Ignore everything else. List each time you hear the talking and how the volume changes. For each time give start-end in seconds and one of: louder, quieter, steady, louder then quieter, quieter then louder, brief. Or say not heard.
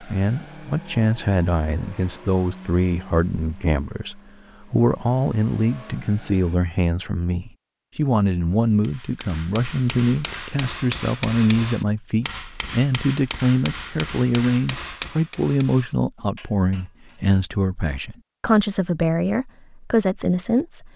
0.0-20.9 steady.